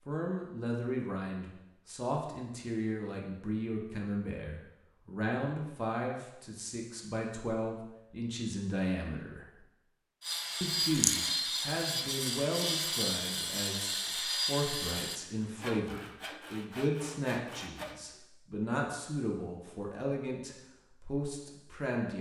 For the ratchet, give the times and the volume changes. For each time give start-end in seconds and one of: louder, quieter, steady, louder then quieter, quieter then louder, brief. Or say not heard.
not heard.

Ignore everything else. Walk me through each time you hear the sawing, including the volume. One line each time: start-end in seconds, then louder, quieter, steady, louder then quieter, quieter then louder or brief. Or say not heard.
10.2-18.2 quieter.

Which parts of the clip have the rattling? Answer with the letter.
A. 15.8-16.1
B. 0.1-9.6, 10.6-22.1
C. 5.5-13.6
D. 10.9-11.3
D.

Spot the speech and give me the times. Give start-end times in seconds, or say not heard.
0.1-9.6, 10.6-22.1.